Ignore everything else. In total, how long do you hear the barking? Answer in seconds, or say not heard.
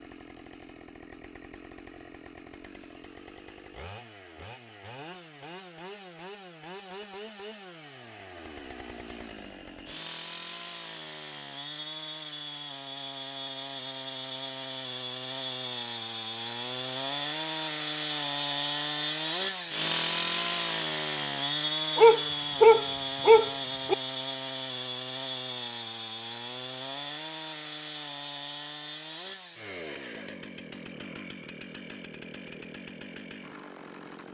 2 s.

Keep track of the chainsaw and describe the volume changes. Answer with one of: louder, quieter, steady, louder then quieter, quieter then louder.
louder then quieter.